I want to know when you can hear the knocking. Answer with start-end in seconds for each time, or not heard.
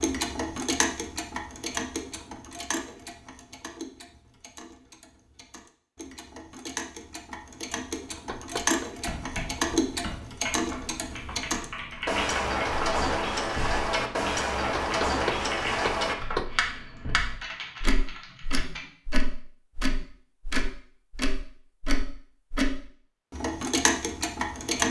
8.2-8.9, 14.8-16.6.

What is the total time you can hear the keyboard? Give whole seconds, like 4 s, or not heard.
10 s.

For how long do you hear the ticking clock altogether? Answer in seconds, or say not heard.
25 s.